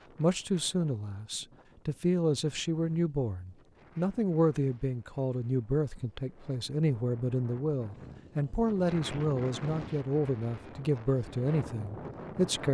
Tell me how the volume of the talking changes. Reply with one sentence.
The volume of the talking stays about the same.